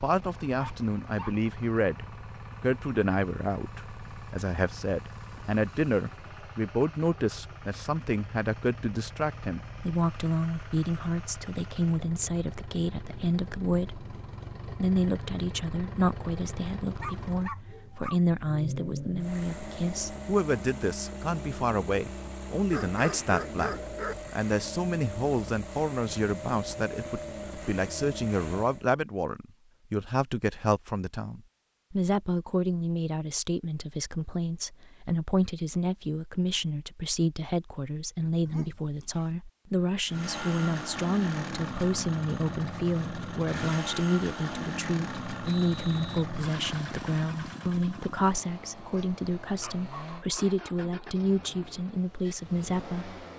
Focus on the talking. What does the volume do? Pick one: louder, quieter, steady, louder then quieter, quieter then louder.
steady.